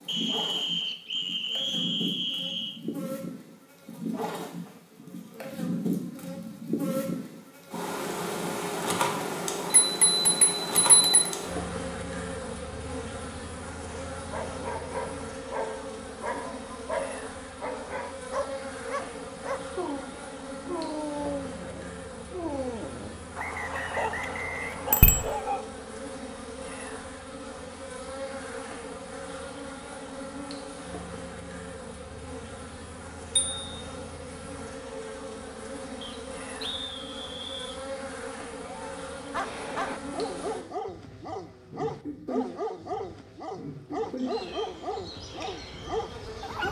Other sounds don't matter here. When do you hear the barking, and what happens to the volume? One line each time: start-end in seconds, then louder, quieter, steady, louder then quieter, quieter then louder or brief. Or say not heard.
14.1-25.6 steady
38.6-46.6 steady.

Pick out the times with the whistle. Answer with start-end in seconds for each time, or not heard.
0.1-2.8, 23.4-25.4, 36.0-37.8.